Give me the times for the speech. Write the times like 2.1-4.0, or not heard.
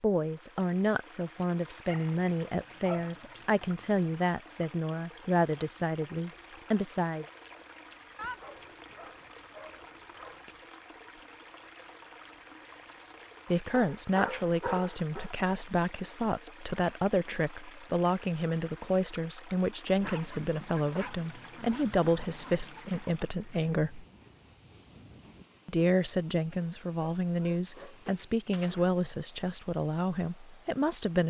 0.0-7.2, 13.5-24.1, 25.6-31.2.